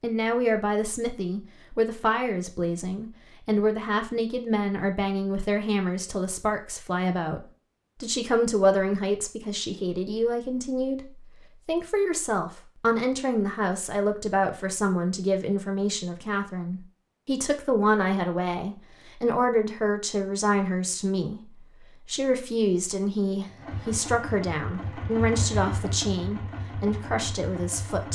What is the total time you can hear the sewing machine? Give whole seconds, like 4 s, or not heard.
5 s.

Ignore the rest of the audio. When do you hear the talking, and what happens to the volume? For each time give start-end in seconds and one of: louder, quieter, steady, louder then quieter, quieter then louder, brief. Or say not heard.
0.0-7.4 steady
8.0-28.1 steady.